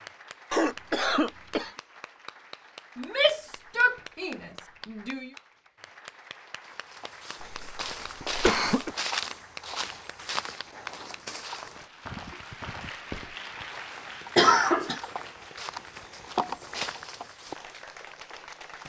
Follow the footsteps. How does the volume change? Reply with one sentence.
The loudness of the footsteps goes down, then up.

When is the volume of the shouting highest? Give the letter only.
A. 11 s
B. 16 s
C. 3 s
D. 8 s
C.